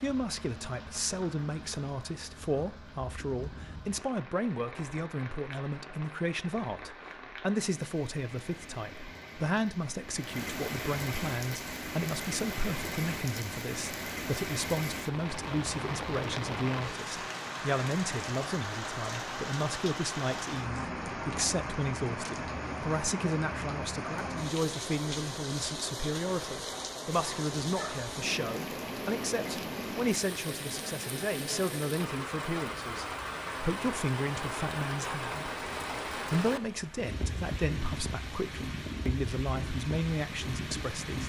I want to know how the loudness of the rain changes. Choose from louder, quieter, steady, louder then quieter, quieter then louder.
louder.